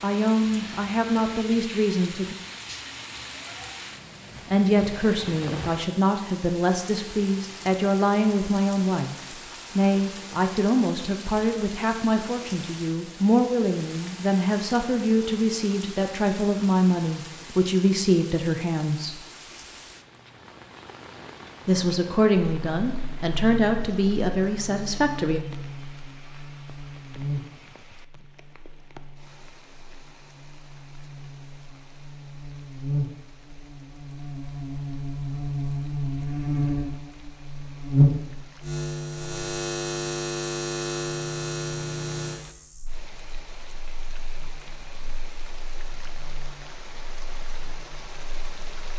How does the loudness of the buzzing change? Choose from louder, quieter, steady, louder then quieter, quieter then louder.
louder then quieter.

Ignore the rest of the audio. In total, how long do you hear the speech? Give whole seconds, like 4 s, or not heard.
20 s.